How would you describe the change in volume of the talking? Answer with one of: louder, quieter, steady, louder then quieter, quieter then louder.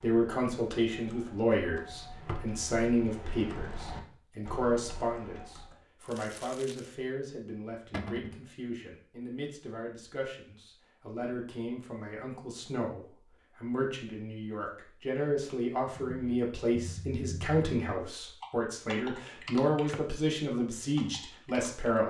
quieter then louder.